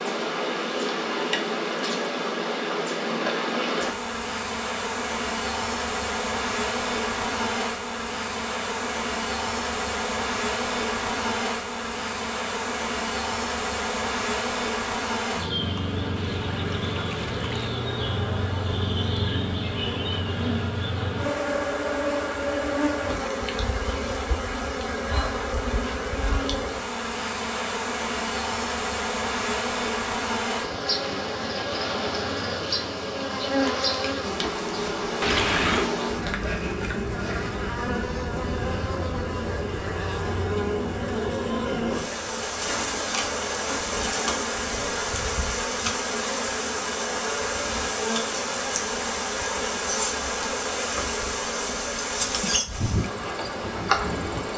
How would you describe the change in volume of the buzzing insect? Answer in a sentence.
The loudness of the buzzing insect stays about the same.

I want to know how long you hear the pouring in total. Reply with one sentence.
The pouring can be heard for 2 seconds in total.